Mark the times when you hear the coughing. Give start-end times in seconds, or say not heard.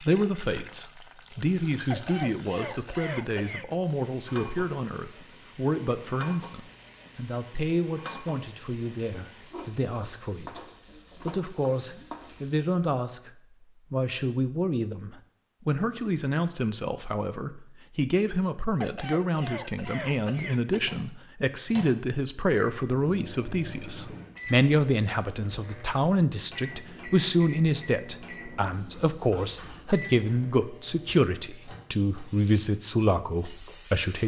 1.9-3.6, 18.8-20.8.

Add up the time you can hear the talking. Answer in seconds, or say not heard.
34 s.